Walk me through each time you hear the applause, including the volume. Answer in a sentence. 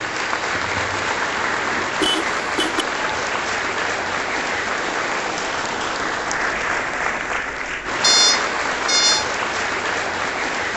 You can hear the applause from 0.0 to 10.7 s, at a steady volume.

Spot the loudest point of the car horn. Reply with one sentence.
The loudest moment of the car horn is at 8 seconds.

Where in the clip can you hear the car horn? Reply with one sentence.
The car horn can be heard from 2.0 to 2.9 s and from 8.0 to 9.2 s.